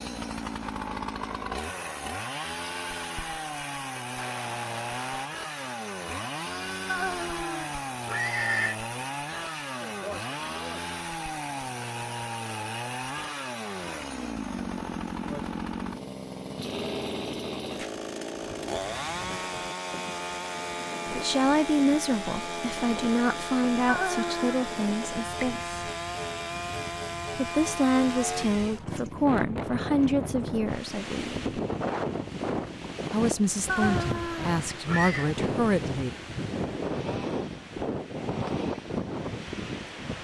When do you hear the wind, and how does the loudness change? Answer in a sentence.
You can hear the wind from 18.4 to 40.1 s, getting louder.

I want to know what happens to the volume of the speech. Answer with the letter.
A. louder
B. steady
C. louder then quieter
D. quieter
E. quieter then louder
B.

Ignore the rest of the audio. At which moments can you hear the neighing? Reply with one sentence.
You can hear the neighing from 6.8 to 8.8 s, from 23.9 to 24.6 s and from 33.6 to 35.3 s.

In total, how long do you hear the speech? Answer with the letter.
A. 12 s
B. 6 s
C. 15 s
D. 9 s
A.